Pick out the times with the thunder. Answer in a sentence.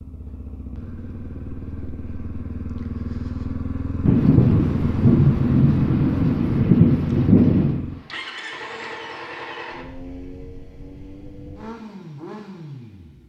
You can hear the thunder from 4.0 to 7.8 s.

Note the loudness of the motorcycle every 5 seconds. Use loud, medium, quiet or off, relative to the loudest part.
loud, loud, medium.